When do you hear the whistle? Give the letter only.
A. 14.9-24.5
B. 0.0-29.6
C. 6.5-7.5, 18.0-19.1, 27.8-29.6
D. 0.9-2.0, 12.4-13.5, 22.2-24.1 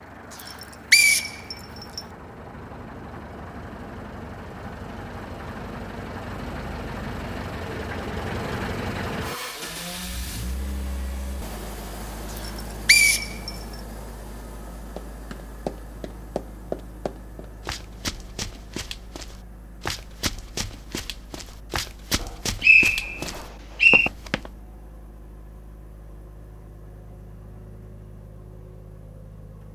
D.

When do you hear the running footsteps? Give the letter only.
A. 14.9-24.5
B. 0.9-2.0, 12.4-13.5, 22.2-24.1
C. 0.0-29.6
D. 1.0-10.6
A.